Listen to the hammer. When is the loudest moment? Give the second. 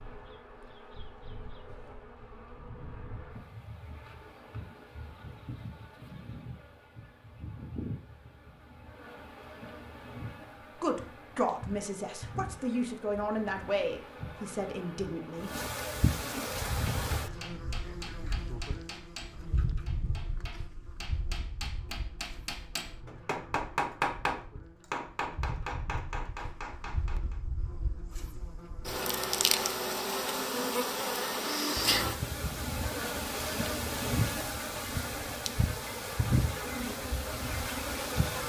24 s.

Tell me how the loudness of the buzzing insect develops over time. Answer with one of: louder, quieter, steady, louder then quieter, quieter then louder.
louder.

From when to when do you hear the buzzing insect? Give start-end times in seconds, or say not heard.
0.0-38.4.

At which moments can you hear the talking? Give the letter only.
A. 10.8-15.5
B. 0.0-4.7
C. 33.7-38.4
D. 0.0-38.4
A.